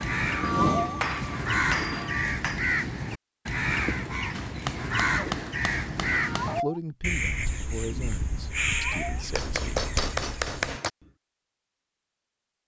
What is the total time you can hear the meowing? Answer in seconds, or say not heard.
2 s.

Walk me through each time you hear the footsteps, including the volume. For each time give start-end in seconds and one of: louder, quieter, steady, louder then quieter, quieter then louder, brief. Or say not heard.
not heard.